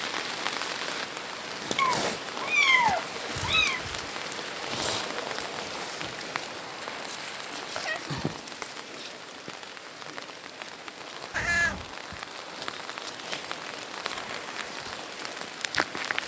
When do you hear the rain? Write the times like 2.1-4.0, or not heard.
0.0-16.2.